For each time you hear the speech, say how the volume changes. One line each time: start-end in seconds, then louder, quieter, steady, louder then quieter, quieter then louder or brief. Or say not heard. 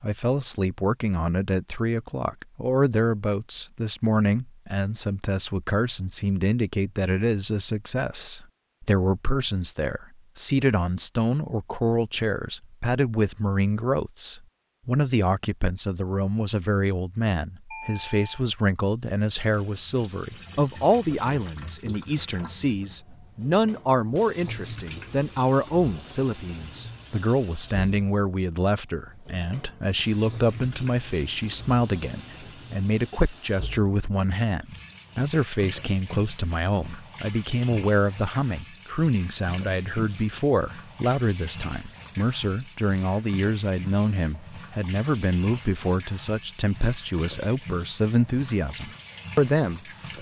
0.0-50.1 steady.